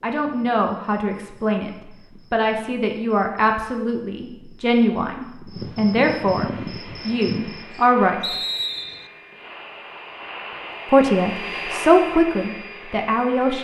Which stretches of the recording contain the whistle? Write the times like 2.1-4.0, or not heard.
8.2-9.1.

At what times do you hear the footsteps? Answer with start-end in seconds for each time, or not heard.
not heard.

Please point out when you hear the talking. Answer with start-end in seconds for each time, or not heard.
0.0-1.7, 2.3-8.3, 10.9-13.5.